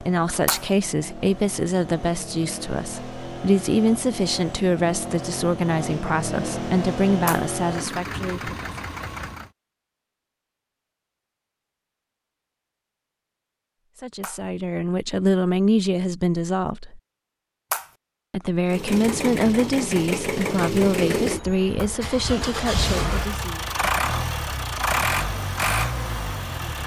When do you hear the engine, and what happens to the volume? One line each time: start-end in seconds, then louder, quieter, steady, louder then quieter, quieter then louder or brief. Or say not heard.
0.0-9.5 louder
18.6-26.8 steady.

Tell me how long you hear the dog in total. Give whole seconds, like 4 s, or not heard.
not heard.